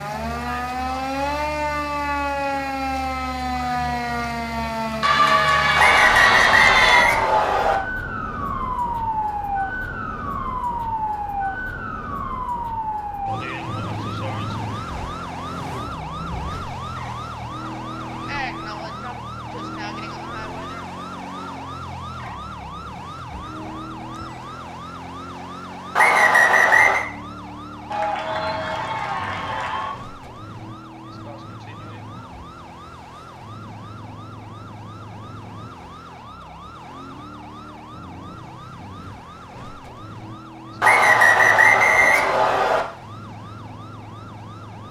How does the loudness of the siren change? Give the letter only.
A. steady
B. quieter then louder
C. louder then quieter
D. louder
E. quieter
E.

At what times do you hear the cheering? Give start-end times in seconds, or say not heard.
5.0-7.0, 27.9-29.9.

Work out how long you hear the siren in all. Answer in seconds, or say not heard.
45 s.